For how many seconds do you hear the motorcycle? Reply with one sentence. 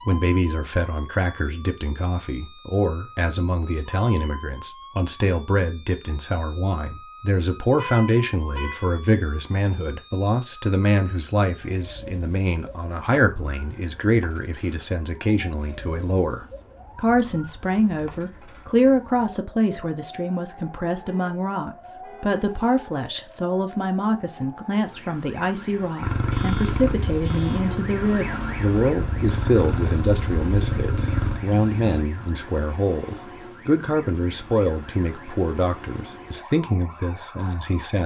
You can hear the motorcycle for 6 seconds altogether.